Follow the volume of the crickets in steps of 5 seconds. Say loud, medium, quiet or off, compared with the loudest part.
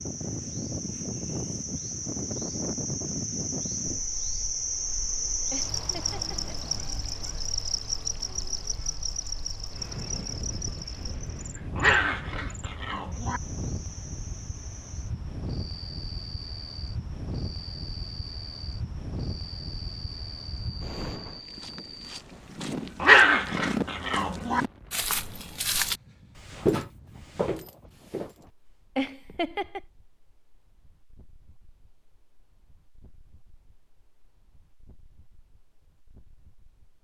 loud, loud, medium, medium, medium, off, off, off.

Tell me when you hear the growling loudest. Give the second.
23 s.